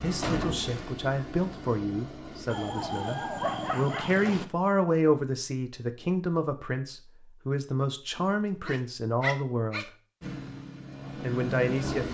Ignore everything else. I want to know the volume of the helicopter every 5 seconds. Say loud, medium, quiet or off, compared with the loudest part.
medium, off, loud.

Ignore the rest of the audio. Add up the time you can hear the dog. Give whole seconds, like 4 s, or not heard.
4 s.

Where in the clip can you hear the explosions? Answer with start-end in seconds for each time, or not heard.
0.2-0.9.